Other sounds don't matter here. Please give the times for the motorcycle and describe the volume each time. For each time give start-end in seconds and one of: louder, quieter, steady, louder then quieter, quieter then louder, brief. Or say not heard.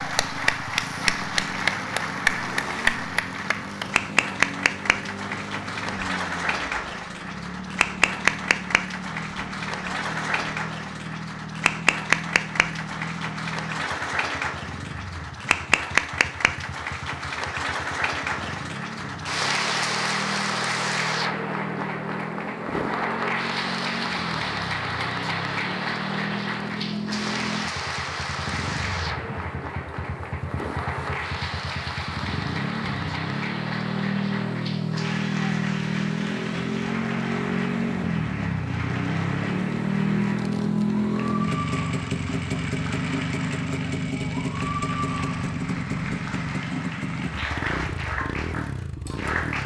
0.0-49.6 louder.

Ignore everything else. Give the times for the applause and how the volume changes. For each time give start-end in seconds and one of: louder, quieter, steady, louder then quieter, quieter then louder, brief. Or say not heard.
0.0-49.6 quieter.